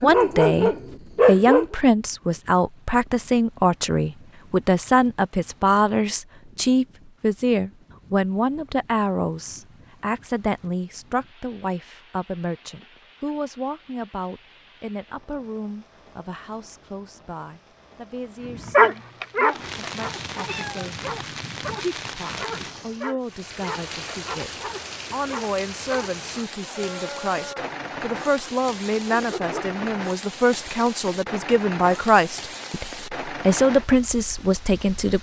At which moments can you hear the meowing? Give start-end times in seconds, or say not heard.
19.5-20.9.